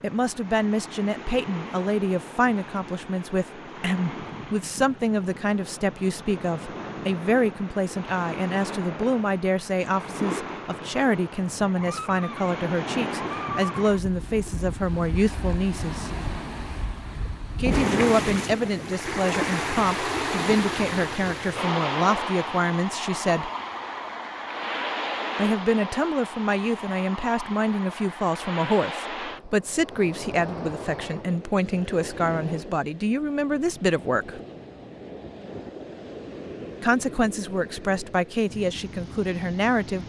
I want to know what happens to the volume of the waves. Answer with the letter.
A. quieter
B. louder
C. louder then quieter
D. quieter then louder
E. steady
C.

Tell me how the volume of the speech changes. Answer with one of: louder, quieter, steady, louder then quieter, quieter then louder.
steady.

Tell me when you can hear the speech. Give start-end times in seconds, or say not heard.
0.0-16.1, 17.6-23.5, 25.4-34.4, 36.8-40.0.